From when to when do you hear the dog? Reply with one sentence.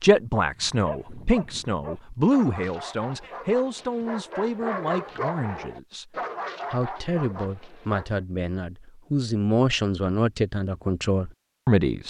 The dog can be heard from 0.6 to 8.2 s.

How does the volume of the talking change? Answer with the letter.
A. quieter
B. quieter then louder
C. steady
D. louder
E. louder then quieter
B.